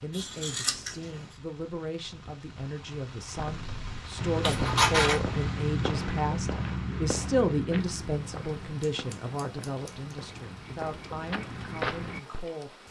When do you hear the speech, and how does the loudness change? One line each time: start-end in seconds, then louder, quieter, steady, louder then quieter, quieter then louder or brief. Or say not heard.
0.0-12.8 louder then quieter.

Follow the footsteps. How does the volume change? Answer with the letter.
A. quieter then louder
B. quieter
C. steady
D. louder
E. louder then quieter
A.